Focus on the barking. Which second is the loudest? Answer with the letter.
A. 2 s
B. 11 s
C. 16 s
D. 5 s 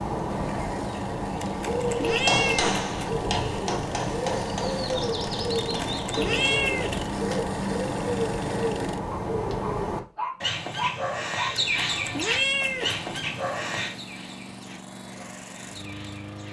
B.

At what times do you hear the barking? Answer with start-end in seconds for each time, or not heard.
9.1-11.6.